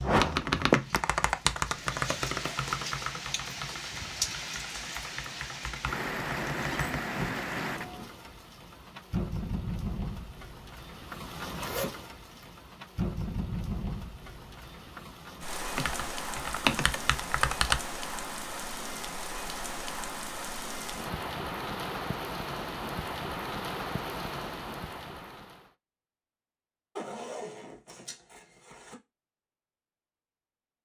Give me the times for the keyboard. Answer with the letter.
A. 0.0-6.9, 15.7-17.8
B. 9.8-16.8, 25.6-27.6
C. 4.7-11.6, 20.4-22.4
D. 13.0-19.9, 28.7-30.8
A.